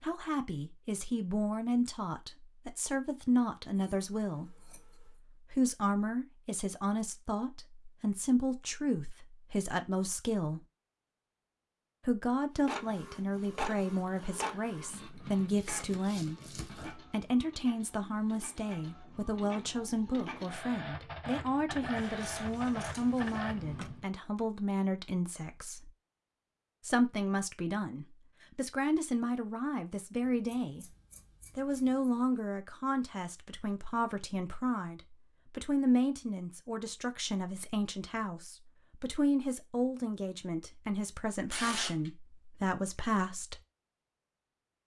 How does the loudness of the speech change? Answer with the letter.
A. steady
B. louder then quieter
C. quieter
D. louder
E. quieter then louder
A.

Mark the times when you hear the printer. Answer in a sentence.
The printer can be heard from 12.6 to 24.1 s.